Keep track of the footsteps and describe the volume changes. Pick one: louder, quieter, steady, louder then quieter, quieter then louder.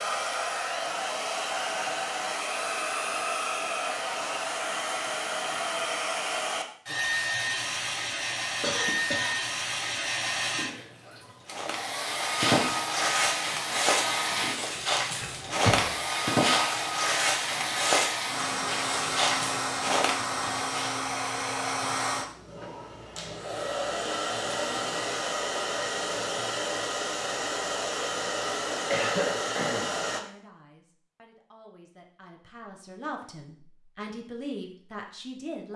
steady.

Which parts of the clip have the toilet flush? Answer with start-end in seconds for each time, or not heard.
not heard.